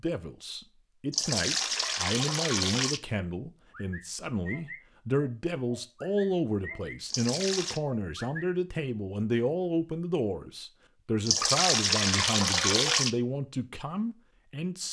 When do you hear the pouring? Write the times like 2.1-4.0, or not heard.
1.1-3.0, 7.0-7.8, 11.2-13.1.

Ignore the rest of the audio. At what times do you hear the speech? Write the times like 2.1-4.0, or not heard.
0.0-14.8.